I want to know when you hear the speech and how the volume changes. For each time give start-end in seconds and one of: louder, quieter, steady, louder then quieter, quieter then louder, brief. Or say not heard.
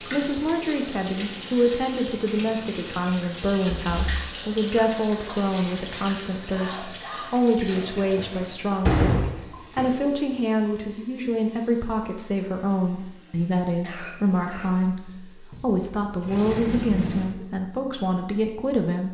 0.0-19.0 steady.